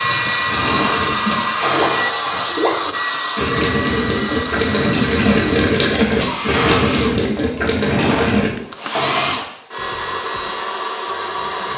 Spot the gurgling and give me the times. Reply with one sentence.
The gurgling can be heard from 0.5 to 8.5 s.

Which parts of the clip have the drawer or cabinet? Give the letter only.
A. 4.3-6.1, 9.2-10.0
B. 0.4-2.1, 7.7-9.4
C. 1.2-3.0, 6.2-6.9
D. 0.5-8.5
B.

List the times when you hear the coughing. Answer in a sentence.
You can hear the coughing from 1.2 to 3.0 s and from 6.2 to 6.9 s.